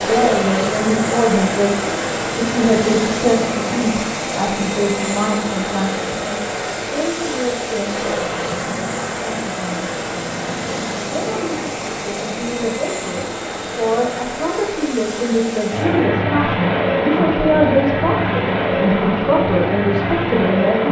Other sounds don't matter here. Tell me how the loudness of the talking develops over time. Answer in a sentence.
The loudness of the talking goes down, then up.